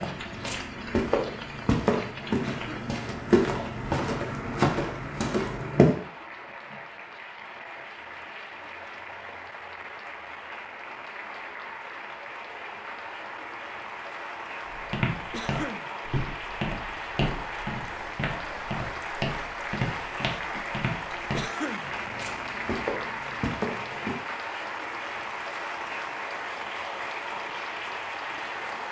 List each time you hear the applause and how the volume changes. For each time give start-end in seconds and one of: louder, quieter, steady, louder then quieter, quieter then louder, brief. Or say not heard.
0.0-28.8 louder.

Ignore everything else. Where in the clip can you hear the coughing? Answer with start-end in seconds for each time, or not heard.
2.5-3.0, 15.3-15.9, 21.3-21.9.